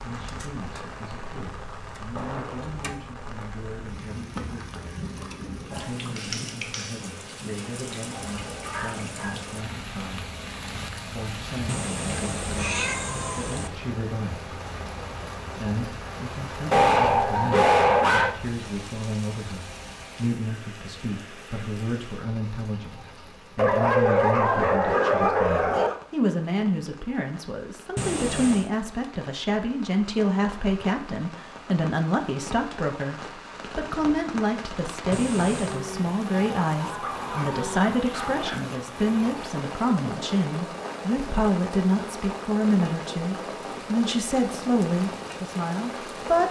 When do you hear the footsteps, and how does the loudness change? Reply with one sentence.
The footsteps can't be heard in this clip.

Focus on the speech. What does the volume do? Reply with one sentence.
The loudness of the speech goes up.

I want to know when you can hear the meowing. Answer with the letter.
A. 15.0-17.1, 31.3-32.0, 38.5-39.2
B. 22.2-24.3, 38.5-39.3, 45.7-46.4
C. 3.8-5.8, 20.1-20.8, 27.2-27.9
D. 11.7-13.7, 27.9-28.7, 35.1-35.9
D.